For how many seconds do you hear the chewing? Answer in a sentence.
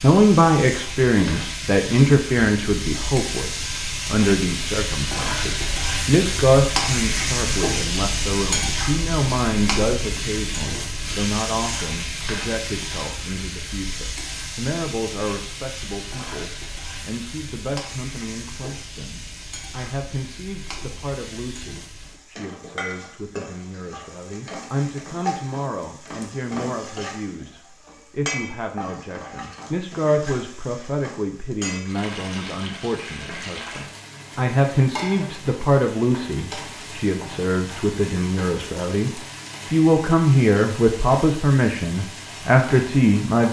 You can't hear the chewing here.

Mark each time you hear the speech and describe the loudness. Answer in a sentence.
You can hear the speech from 0.0 to 43.4 s, getting quieter then louder.